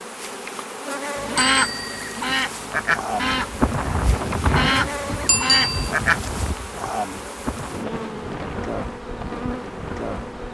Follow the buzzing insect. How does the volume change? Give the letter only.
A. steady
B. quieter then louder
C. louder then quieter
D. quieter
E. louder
A.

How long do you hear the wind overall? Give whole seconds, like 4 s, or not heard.
7 s.